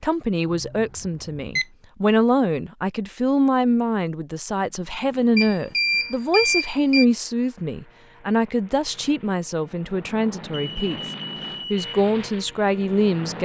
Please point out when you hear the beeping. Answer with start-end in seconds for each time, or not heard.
0.5-1.6, 5.3-7.0, 10.5-11.9.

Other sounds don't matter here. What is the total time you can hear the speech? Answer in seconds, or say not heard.
13 s.